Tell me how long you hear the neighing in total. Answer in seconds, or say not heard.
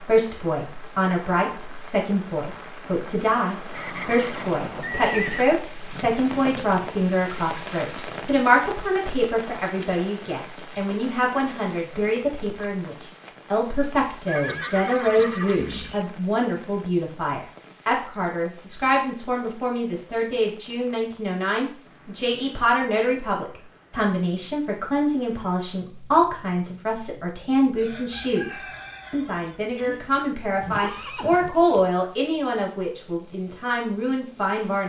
5 s.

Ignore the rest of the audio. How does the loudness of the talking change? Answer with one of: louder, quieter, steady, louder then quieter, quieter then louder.
steady.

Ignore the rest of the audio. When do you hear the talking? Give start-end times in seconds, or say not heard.
0.0-34.8.